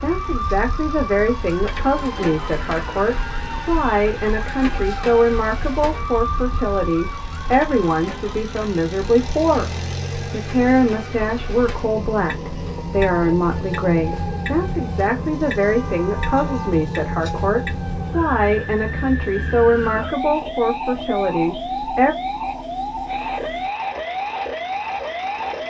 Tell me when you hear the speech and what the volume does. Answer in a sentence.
You can hear the speech from 0.0 to 22.1 s, at a steady volume.